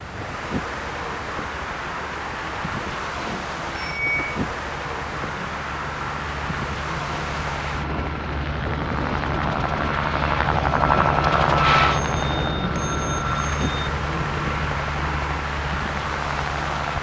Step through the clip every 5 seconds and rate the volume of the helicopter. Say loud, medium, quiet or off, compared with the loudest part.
quiet, medium, loud, medium.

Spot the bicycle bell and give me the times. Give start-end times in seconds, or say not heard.
3.1-4.4, 11.9-13.8.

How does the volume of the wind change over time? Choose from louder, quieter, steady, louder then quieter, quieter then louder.
steady.